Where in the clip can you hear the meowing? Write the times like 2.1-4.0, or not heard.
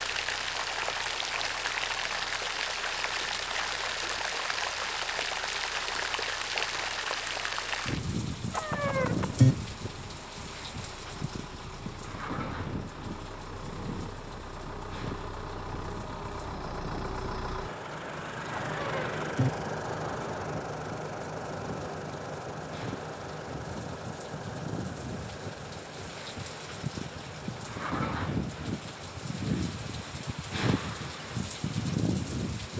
8.5-9.6, 18.6-19.5.